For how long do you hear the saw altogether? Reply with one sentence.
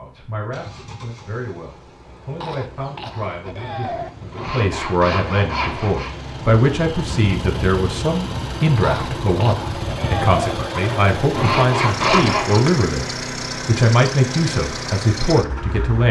You can hear the saw for 4 seconds altogether.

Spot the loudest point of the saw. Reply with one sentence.
The loudest moment of the saw is at 12 seconds.